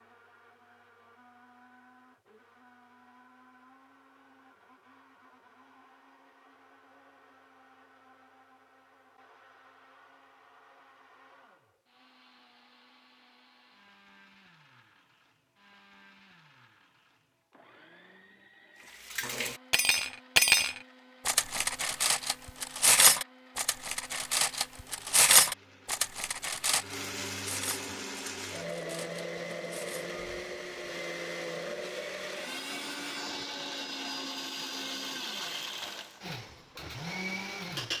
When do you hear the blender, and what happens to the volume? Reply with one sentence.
The blender can be heard from 0.0 to 37.9 s, getting louder.